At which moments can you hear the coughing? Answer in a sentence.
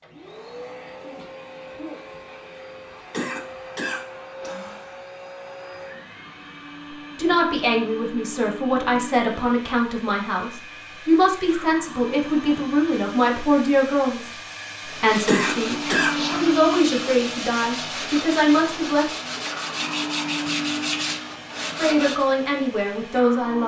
You can hear the coughing from 3.1 to 5.0 s and from 15.2 to 16.1 s.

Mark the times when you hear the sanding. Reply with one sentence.
The sanding can be heard from 14.8 to 22.2 s.